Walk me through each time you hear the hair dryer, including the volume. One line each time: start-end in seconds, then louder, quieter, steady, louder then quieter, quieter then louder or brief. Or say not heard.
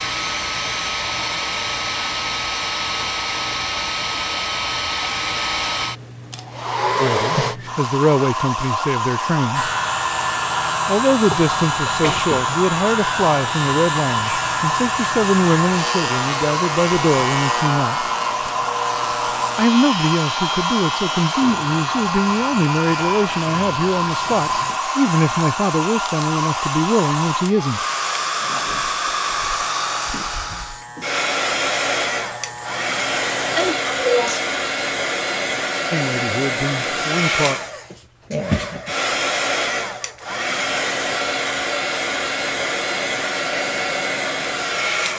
0.0-45.1 steady.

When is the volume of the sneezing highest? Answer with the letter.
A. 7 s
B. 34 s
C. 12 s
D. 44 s
B.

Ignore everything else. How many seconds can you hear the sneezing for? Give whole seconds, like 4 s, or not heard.
2 s.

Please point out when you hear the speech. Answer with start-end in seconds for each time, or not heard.
7.0-9.7, 10.8-18.1, 19.6-27.9, 35.9-37.5.